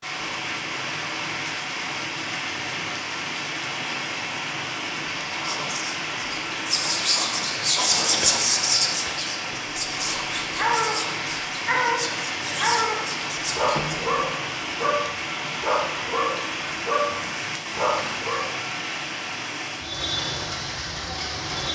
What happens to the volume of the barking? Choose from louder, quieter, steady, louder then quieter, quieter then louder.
steady.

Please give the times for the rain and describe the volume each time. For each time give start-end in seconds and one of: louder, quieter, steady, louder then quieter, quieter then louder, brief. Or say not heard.
0.0-21.7 steady.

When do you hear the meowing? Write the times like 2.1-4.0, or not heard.
13.7-14.4.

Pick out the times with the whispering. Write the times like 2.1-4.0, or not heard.
5.2-13.9.